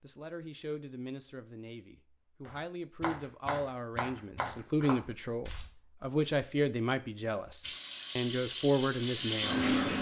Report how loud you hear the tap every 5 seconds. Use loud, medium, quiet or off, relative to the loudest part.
off, loud.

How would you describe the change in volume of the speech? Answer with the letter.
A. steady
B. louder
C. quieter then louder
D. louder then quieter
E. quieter
B.